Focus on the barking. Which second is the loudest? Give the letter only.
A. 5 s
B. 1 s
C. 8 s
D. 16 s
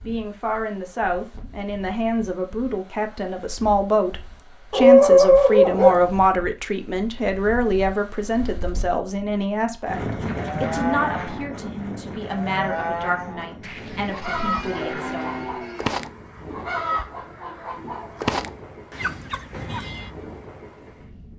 A.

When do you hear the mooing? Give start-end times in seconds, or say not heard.
10.3-15.9.